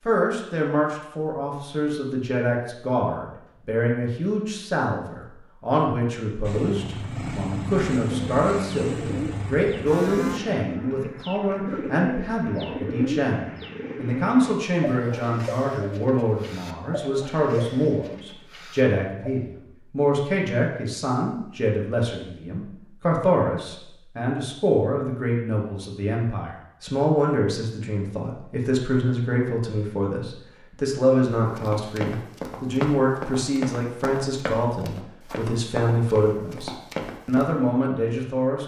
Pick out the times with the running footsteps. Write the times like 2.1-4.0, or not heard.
31.4-37.5.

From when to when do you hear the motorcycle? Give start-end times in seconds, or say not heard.
6.4-10.4.